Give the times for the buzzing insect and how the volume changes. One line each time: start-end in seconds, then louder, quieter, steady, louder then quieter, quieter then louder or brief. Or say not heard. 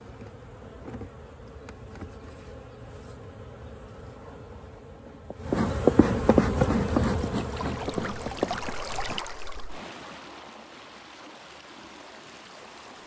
0.0-9.2 louder then quieter.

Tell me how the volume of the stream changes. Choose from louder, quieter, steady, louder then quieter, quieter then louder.
quieter.